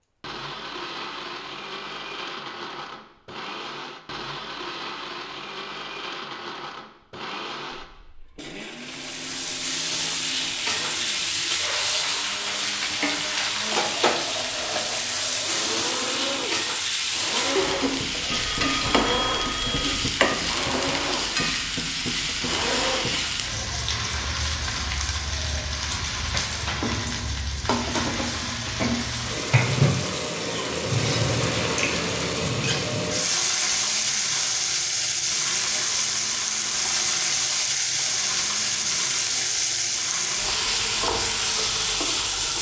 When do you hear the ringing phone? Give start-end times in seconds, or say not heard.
18.3-19.9.